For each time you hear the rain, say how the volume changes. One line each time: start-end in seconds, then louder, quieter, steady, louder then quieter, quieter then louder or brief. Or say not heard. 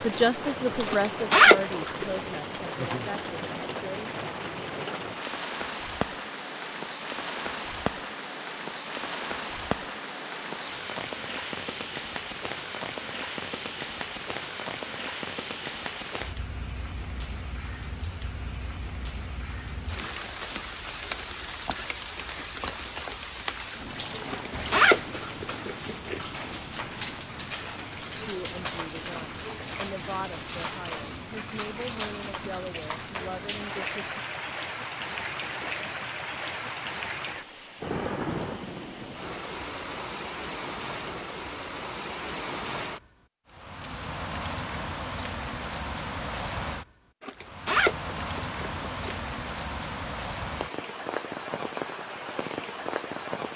0.0-53.5 steady.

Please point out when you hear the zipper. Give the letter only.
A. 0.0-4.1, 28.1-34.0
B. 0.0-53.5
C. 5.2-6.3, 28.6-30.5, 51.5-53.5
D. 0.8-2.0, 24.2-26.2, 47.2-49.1
D.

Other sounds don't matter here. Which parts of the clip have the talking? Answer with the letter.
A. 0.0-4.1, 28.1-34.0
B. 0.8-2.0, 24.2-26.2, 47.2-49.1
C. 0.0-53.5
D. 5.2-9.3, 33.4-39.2
A.